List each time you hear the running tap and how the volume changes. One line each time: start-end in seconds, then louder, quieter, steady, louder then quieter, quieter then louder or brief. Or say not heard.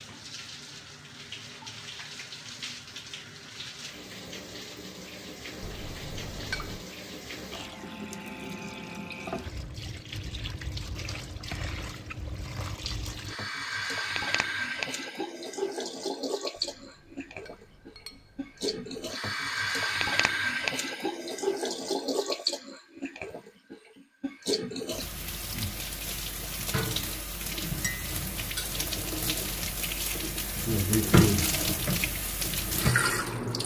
0.0-33.6 louder.